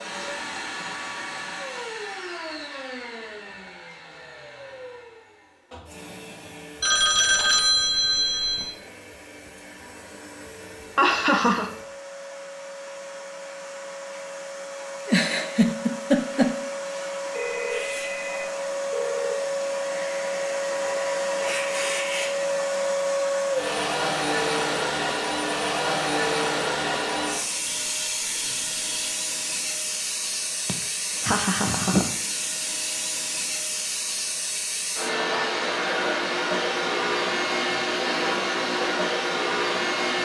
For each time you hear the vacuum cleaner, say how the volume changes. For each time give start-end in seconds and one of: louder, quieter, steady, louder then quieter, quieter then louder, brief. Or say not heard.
0.0-40.1 louder.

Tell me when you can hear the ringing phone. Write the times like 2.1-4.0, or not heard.
6.8-8.8, 17.3-19.4, 27.6-29.1.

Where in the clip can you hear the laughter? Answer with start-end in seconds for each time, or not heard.
10.9-11.7, 15.1-16.6, 30.6-32.1.